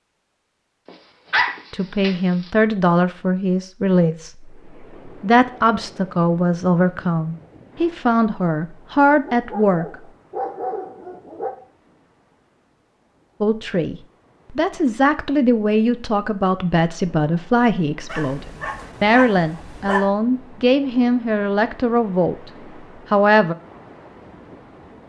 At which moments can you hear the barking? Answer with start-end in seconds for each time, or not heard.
0.8-2.5, 9.2-11.6, 18.1-20.1.